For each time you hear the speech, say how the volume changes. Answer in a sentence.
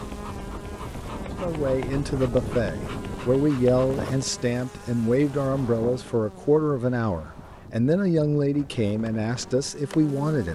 The speech can be heard from 1.4 to 10.5 s, at a steady volume.